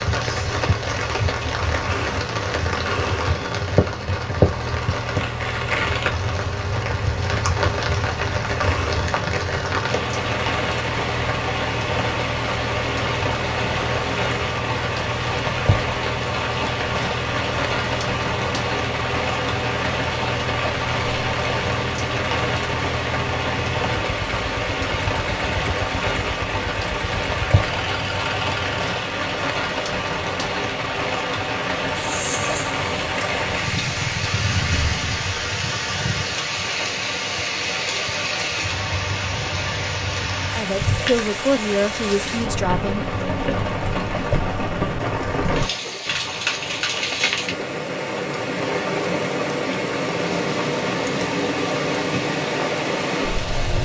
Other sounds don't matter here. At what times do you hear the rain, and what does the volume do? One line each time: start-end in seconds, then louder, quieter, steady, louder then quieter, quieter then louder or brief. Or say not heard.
0.0-53.8 steady.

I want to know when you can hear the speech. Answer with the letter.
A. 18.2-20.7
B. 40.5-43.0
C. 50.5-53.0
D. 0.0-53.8
B.